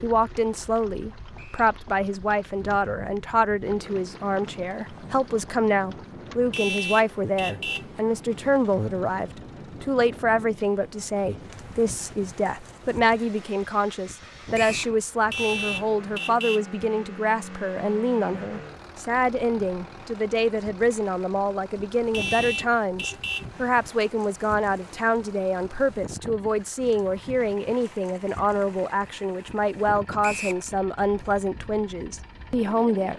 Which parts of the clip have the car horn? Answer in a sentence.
You can hear the car horn from 6.5 to 7.9 s, from 15.3 to 16.7 s and from 22.1 to 23.5 s.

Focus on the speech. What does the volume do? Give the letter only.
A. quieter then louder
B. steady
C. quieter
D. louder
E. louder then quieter
B.